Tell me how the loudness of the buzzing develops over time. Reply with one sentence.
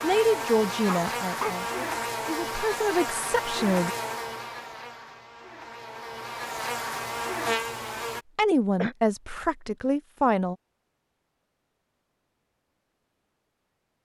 The volume of the buzzing goes down, then up.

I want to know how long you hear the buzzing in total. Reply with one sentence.
The buzzing can be heard for 8 seconds in total.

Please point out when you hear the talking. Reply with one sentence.
The talking can be heard from 0.0 to 4.0 s and from 8.3 to 10.6 s.